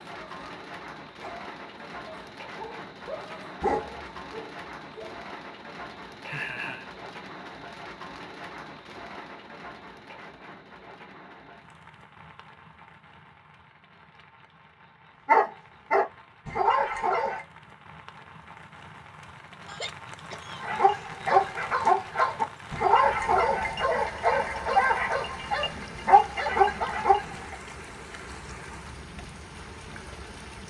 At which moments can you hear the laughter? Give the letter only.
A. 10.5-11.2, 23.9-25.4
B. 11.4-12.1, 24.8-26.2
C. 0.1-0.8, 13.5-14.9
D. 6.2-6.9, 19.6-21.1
D.